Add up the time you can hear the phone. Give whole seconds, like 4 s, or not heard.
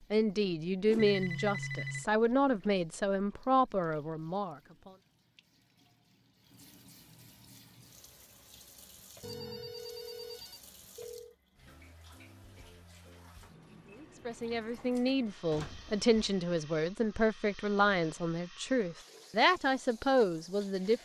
4 s.